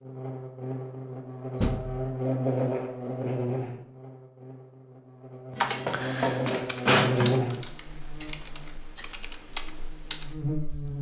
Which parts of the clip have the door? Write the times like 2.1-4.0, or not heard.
1.6-2.0, 5.5-7.3.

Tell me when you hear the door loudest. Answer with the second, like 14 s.
7 s.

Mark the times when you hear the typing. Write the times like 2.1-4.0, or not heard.
5.5-10.9.